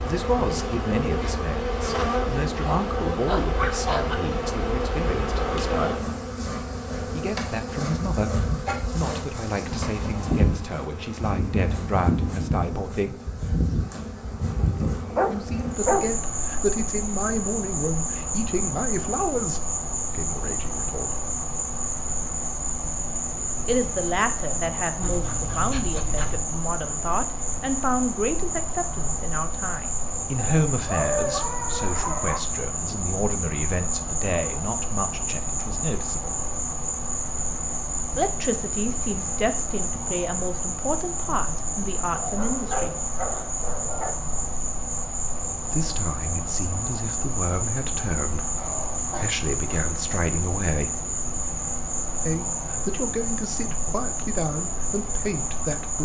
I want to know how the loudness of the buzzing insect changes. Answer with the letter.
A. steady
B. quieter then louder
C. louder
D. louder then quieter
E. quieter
A.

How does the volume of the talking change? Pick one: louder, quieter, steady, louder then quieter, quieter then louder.
steady.